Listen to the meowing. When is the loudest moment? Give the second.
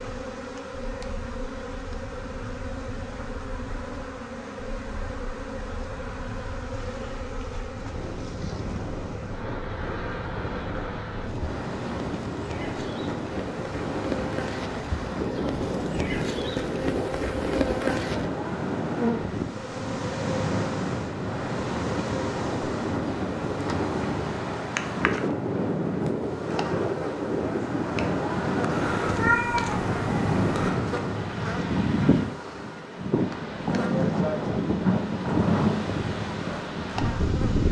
29 s.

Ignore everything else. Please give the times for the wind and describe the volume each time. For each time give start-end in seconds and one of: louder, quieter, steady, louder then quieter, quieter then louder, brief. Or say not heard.
0.0-37.6 louder.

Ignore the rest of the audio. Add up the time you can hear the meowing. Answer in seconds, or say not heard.
2 s.